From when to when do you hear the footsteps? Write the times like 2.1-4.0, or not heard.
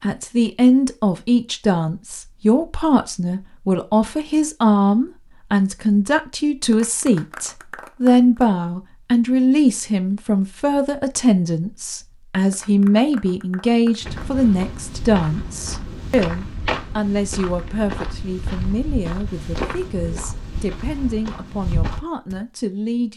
14.0-22.4.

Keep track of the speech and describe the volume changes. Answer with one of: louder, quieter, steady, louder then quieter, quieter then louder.
quieter.